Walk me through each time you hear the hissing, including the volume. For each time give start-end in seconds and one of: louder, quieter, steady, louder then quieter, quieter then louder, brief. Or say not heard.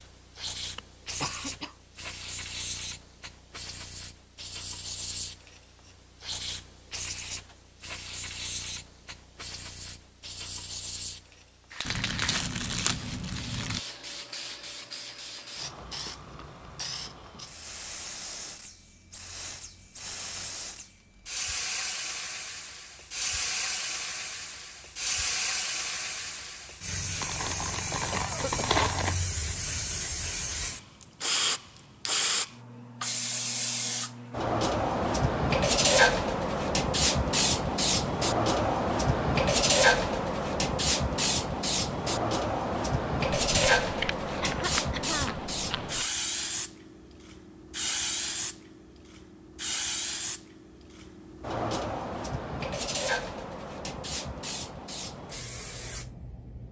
0.0-56.6 louder then quieter.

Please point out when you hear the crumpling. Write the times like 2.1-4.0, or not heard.
11.8-13.8, 27.2-29.2, 43.5-46.1.